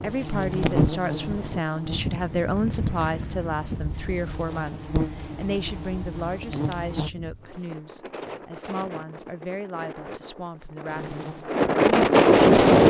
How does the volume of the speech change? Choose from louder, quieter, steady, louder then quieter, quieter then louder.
quieter.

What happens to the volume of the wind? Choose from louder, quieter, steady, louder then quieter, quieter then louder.
quieter then louder.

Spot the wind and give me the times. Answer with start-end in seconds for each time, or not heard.
0.0-12.8.